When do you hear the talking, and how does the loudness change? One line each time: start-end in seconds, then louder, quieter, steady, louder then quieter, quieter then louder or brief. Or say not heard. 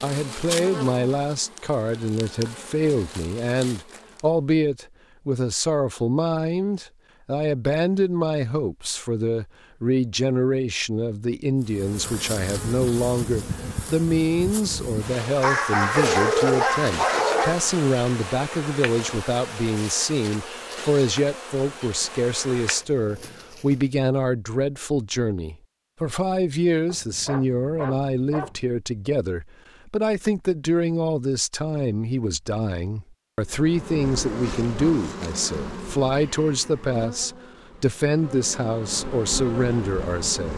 0.0-40.5 steady.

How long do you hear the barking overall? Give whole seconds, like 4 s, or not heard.
4 s.